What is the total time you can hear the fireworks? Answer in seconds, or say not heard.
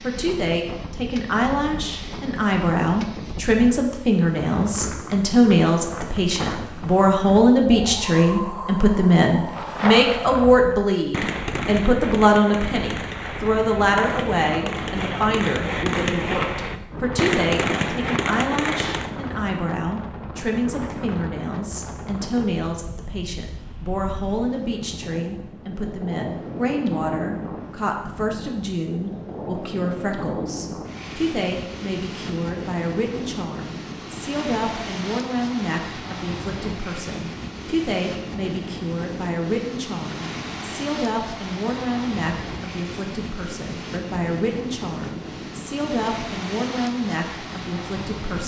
10 s.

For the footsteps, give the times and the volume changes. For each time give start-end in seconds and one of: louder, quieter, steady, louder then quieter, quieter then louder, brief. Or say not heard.
not heard.